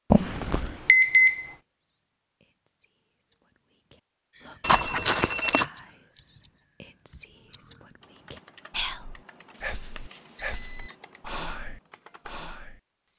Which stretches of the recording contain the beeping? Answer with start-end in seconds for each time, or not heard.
0.1-1.5, 4.6-5.7, 9.5-10.9.